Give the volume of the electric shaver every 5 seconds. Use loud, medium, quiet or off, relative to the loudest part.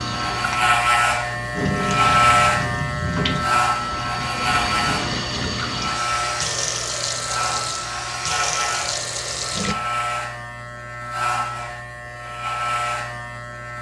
loud, medium, medium.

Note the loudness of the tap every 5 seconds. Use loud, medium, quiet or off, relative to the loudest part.
loud, loud, off.